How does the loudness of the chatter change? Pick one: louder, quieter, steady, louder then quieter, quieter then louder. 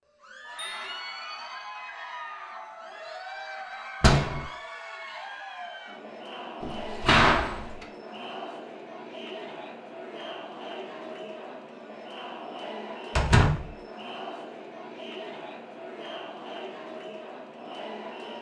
steady.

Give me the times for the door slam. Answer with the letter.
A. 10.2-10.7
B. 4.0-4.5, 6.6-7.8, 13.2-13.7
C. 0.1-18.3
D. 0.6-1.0
B.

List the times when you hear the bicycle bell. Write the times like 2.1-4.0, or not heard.
0.6-1.0.